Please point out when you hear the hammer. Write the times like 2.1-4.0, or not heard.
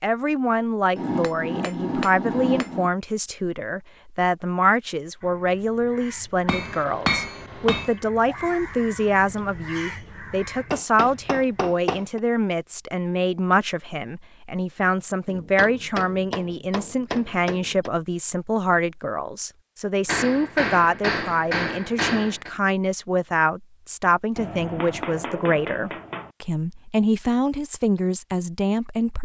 0.9-2.9, 6.5-8.0, 10.7-12.2, 15.2-17.9, 20.1-22.5, 24.4-26.3.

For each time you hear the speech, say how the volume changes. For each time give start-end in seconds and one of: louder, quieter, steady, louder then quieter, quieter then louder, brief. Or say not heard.
0.0-29.2 steady.